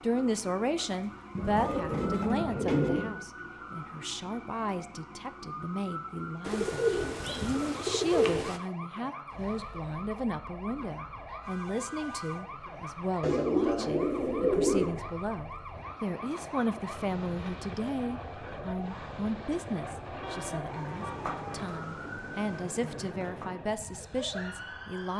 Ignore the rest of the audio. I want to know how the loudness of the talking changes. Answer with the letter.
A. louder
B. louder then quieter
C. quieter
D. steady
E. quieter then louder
D.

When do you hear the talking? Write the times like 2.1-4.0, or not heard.
0.0-25.1.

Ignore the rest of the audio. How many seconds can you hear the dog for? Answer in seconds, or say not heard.
not heard.